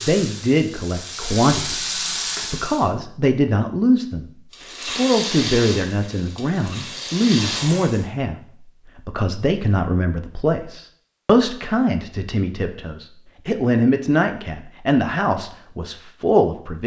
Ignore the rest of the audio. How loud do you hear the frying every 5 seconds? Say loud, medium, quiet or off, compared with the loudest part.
loud, loud, off, off.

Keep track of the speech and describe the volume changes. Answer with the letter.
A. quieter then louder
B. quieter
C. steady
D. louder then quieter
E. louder
C.